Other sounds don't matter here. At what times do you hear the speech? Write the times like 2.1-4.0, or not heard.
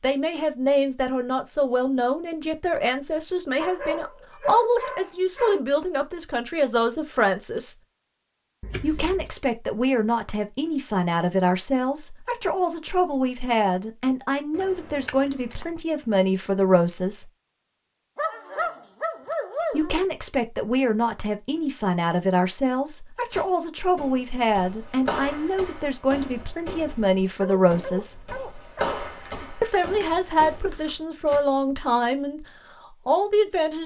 0.0-7.8, 8.8-17.3, 19.7-28.2, 29.6-32.5, 33.0-33.8.